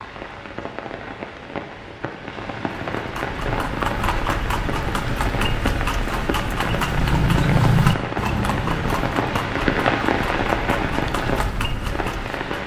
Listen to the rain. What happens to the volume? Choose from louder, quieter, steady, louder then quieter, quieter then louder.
louder.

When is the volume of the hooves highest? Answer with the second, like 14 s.
8 s.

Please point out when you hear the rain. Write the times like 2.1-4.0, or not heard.
0.0-12.6.